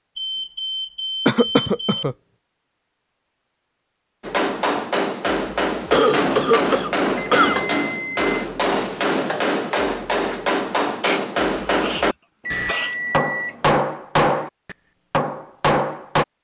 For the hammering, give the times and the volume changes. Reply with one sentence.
You can hear the hammering from 4.2 to 16.2 s, at a steady volume.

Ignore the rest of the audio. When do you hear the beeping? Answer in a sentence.
The beeping can be heard from 0.1 to 2.0 s, from 7.2 to 8.5 s and from 12.4 to 13.8 s.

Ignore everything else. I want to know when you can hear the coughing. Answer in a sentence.
You can hear the coughing from 1.2 to 2.1 s, from 5.9 to 7.6 s and from 11.0 to 12.9 s.